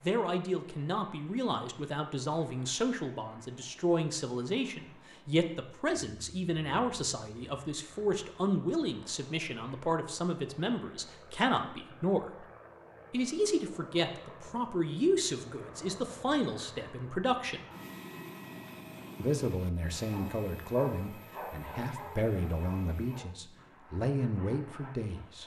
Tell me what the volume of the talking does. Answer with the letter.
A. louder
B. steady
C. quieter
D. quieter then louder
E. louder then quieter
B.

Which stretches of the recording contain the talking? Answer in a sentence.
The talking can be heard from 0.0 to 12.3 s, from 13.1 to 17.6 s and from 19.2 to 25.4 s.